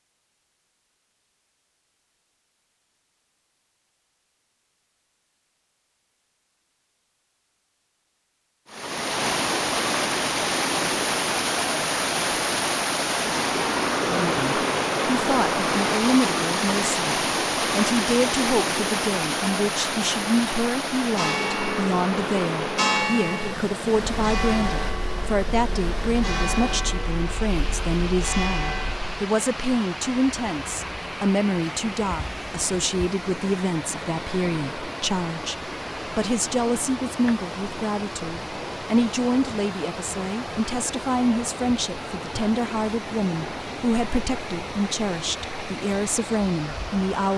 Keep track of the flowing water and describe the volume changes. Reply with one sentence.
The volume of the flowing water goes down.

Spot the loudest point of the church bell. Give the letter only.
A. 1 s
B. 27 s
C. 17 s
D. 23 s
D.